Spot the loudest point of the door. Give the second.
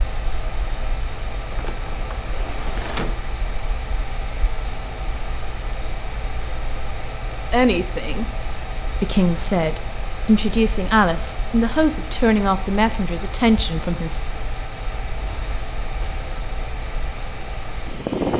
3 s.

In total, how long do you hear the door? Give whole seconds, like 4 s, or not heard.
2 s.